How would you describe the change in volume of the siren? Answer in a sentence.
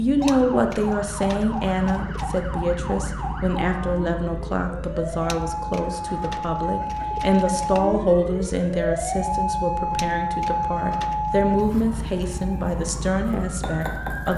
The volume of the siren goes up, then down.